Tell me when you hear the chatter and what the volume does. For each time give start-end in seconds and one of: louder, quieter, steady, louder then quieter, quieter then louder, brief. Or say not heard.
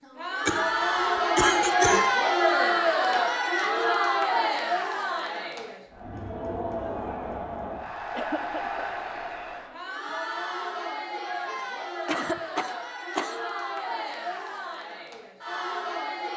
0.0-16.3 quieter.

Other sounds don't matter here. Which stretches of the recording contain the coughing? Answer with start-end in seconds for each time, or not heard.
0.5-2.1, 8.1-8.8, 12.1-13.4.